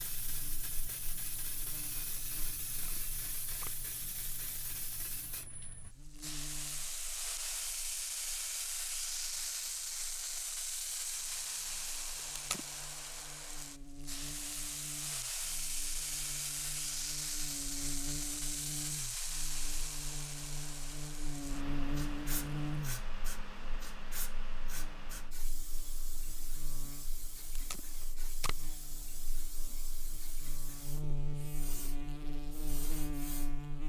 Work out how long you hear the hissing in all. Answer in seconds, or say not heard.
34 s.